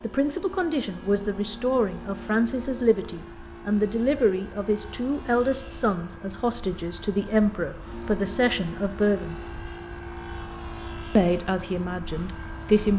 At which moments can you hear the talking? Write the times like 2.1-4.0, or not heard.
0.0-9.3, 11.2-12.9.